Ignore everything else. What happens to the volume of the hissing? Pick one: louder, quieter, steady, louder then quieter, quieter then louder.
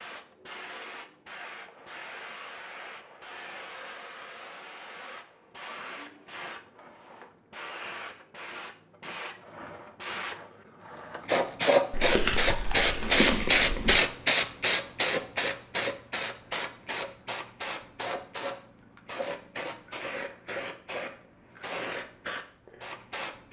louder then quieter.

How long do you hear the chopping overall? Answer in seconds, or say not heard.
not heard.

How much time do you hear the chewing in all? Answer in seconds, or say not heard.
2 s.